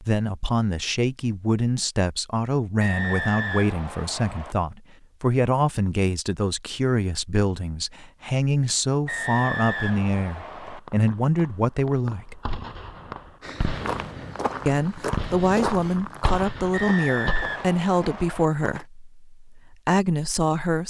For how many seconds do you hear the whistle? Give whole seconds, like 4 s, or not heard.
5 s.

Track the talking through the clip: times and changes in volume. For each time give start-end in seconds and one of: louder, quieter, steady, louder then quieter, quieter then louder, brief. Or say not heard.
0.0-12.4 steady
14.7-20.8 steady.